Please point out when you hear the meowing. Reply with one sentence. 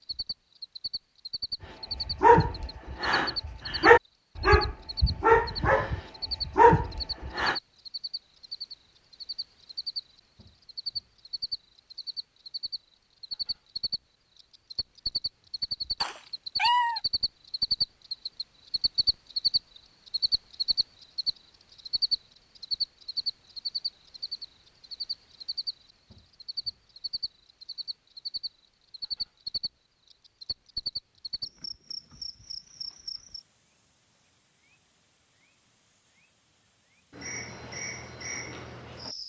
You can hear the meowing from 16.0 to 17.0 s.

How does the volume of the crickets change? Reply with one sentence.
The loudness of the crickets goes up, then down.